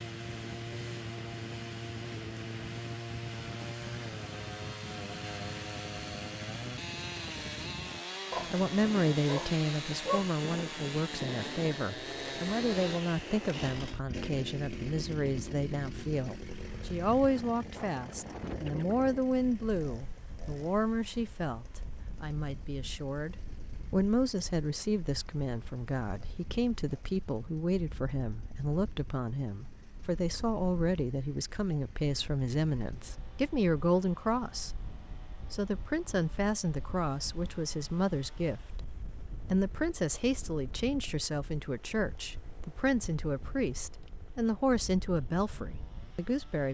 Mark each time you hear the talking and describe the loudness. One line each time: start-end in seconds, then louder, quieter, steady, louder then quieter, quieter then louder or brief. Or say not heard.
8.5-46.7 steady.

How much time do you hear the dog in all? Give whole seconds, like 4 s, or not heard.
2 s.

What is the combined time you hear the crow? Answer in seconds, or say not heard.
not heard.